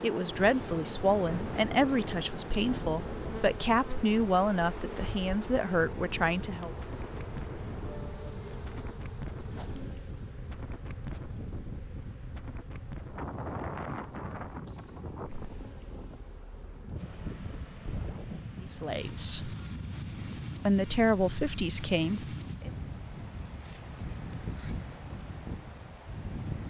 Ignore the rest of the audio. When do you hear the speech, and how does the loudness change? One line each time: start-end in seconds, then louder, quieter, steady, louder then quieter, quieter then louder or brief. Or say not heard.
0.0-6.8 steady
18.6-19.6 brief
20.6-22.7 brief.